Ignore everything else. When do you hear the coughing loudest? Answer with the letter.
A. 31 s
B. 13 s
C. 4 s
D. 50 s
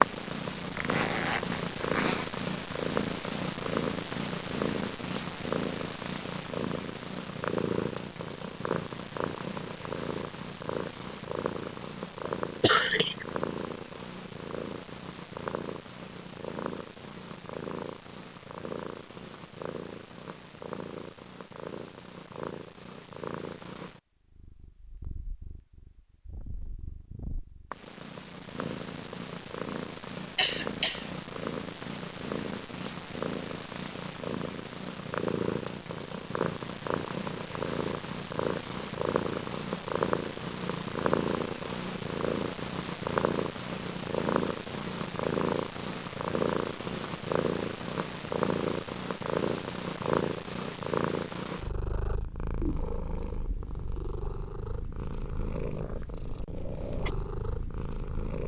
B.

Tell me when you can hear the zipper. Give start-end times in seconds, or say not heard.
0.8-2.3.